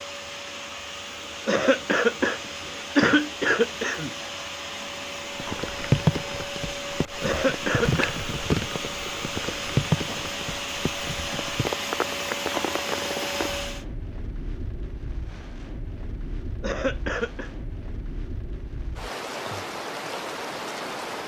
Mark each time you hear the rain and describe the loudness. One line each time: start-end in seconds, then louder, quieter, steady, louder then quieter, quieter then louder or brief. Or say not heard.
5.3-21.2 quieter then louder.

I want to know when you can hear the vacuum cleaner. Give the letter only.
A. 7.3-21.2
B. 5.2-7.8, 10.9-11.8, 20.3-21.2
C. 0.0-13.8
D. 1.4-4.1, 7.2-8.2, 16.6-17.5
C.